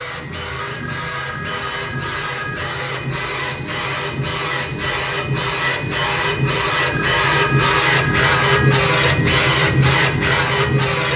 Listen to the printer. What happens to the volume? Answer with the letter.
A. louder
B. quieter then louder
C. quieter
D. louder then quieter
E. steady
A.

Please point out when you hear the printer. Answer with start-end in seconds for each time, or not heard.
0.0-11.1.